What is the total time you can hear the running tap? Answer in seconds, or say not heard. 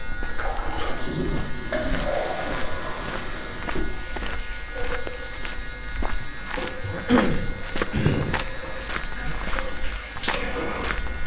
11 s.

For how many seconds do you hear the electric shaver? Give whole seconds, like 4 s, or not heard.
11 s.